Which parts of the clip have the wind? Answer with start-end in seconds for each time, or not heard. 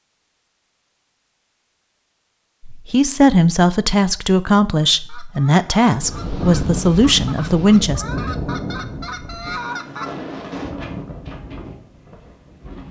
5.8-12.8.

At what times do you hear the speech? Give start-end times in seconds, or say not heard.
2.6-8.1.